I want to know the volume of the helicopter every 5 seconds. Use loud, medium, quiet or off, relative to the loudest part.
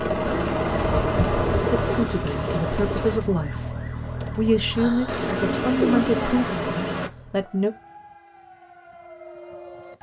loud, off.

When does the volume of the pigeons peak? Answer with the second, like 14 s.
6 s.